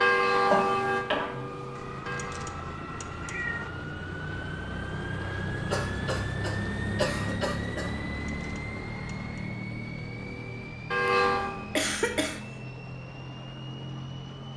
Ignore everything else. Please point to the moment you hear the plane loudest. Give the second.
7 s.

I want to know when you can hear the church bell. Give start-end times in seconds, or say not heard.
0.0-2.6, 9.9-11.8.